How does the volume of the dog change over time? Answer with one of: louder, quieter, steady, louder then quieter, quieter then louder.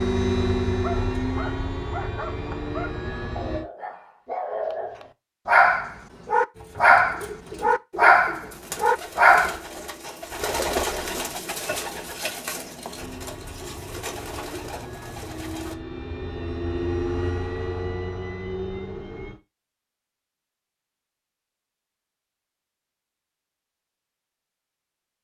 louder.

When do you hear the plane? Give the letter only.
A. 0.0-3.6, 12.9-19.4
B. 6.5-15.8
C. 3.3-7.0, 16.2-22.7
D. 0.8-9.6
A.